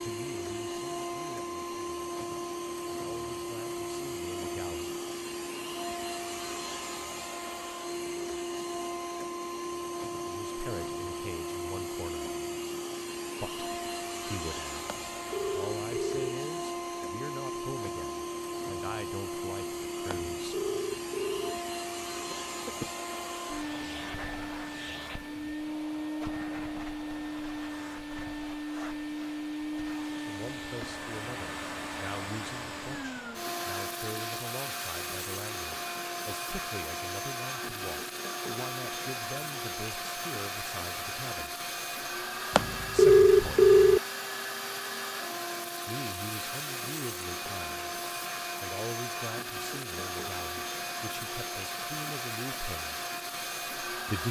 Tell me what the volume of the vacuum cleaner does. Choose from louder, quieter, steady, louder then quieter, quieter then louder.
steady.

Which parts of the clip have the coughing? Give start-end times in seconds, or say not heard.
22.3-22.9.